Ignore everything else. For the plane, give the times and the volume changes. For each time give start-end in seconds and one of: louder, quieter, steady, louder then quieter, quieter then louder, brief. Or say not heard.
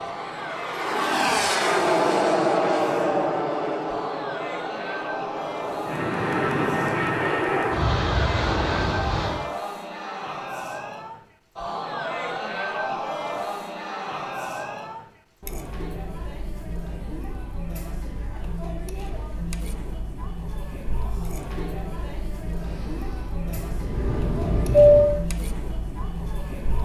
0.0-9.5 quieter then louder
22.6-25.2 brief.